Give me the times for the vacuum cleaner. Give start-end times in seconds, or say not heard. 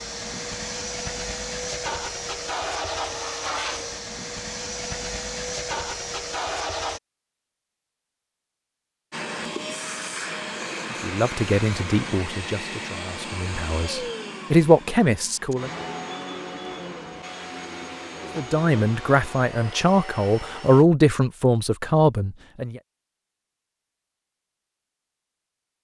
0.0-7.0, 9.1-20.9.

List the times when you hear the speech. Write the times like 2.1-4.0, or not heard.
11.0-15.7, 18.4-22.8.